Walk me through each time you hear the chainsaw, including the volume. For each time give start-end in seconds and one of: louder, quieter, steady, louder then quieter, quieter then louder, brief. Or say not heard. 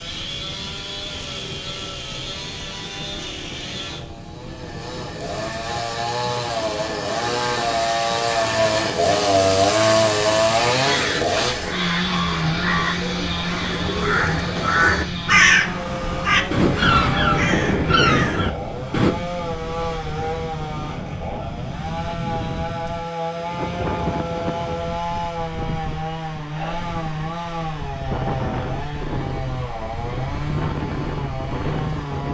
0.0-32.2 louder then quieter.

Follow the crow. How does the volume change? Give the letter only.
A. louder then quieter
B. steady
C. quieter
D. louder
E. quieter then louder
D.